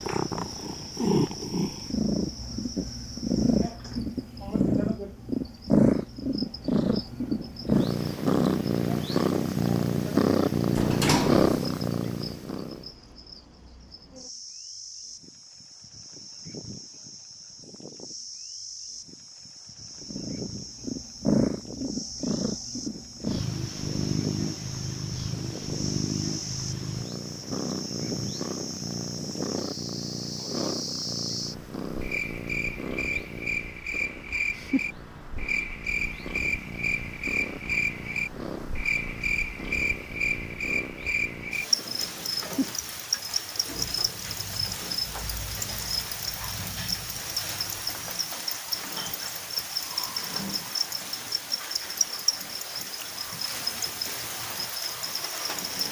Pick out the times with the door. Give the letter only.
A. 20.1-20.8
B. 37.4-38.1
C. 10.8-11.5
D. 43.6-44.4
C.